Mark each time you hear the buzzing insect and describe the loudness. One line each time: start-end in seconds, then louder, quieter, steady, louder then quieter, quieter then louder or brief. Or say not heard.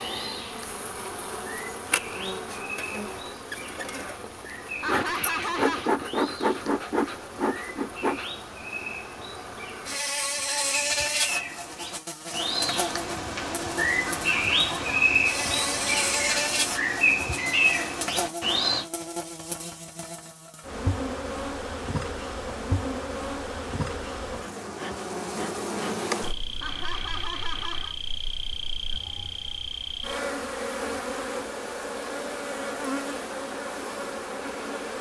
0.0-34.9 steady.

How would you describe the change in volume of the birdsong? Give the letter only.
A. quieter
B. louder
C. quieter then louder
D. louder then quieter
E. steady
B.